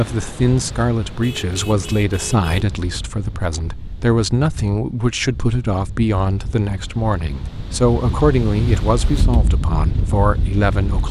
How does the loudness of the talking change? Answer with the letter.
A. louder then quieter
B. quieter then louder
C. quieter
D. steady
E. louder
D.